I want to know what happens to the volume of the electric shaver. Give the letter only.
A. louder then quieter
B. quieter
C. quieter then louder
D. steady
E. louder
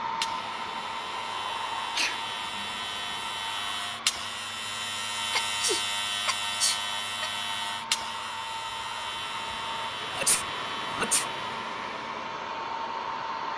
A.